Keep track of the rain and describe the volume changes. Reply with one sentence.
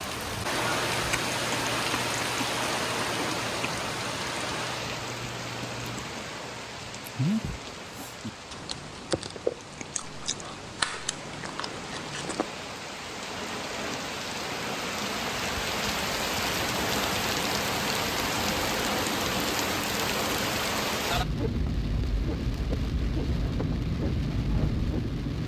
The loudness of the rain goes down, then up.